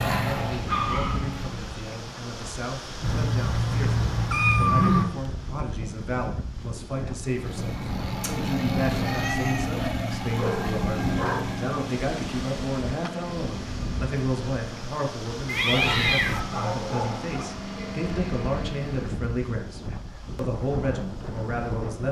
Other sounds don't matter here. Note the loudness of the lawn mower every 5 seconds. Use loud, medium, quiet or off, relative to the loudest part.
loud, loud, loud, medium, off.